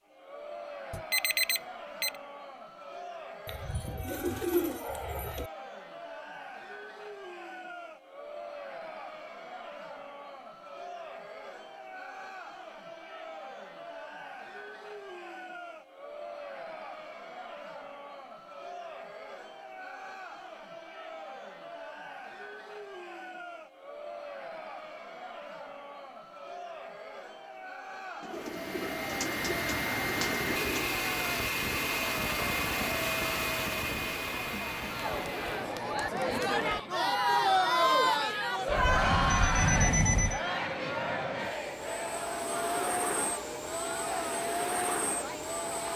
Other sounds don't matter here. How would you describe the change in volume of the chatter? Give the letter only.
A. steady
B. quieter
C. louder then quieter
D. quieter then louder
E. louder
E.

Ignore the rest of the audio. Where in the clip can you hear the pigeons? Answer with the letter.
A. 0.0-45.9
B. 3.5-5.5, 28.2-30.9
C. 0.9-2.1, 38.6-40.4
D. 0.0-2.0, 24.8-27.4
B.